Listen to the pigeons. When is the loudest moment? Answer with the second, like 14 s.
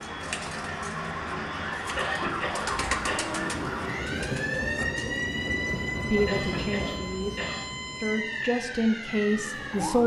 3 s.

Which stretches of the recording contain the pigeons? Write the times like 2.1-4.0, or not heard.
0.0-5.0.